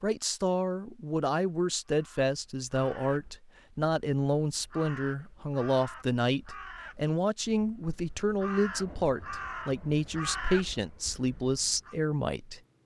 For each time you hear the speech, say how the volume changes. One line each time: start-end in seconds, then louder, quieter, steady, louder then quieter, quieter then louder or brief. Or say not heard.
0.0-12.6 steady.